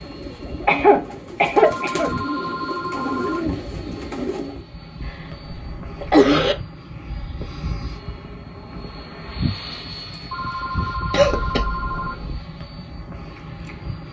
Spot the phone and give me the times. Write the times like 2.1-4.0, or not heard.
1.6-3.5, 10.3-12.2.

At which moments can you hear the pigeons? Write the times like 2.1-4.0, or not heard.
0.0-4.7.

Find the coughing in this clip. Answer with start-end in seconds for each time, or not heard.
0.7-2.1, 5.0-6.5, 11.1-12.3.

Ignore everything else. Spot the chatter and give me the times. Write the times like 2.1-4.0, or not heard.
not heard.